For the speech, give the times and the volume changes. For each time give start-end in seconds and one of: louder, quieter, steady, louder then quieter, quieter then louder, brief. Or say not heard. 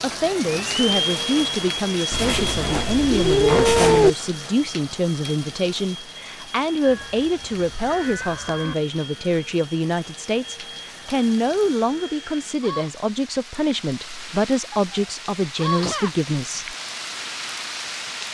0.0-16.8 steady.